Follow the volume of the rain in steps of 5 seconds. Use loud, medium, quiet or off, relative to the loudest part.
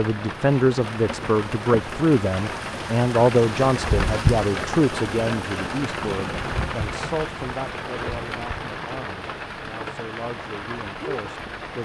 loud, loud, medium.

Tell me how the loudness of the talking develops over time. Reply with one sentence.
The loudness of the talking goes down.